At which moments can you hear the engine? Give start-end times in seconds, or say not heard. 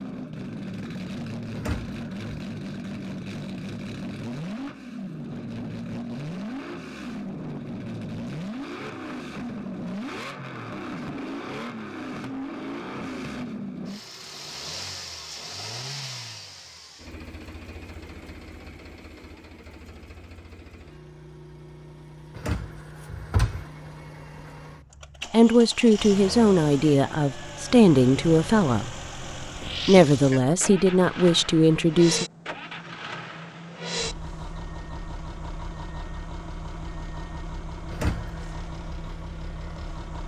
0.0-40.2.